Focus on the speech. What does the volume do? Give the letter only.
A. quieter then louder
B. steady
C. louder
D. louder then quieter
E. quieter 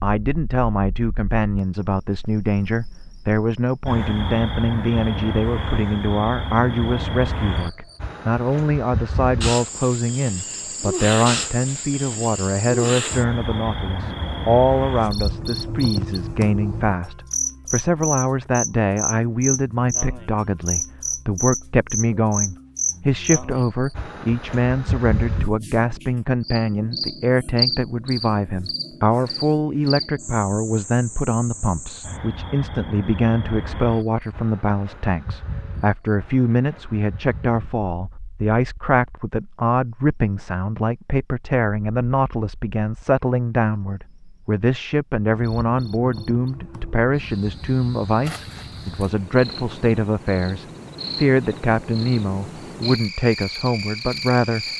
B.